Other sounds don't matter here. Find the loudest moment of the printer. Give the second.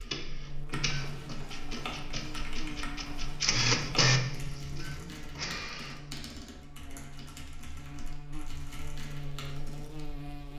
4 s.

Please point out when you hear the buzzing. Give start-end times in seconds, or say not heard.
0.0-10.5.